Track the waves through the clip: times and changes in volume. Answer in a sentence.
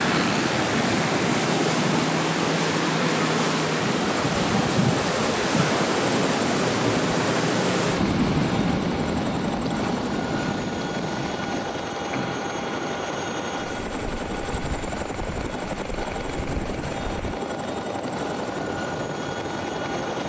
You can hear the waves from 0.0 to 20.2 s, getting quieter.